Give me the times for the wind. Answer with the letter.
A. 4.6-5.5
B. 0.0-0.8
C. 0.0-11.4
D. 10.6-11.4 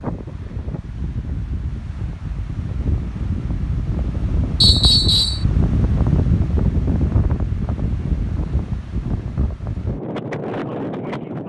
C.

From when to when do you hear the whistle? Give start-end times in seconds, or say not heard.
4.6-5.5.